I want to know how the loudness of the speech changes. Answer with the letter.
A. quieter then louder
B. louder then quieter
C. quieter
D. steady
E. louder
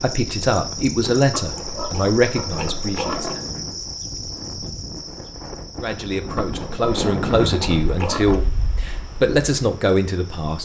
D.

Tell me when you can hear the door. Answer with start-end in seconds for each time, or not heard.
not heard.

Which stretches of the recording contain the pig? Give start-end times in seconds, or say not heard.
1.3-3.4, 6.3-8.4.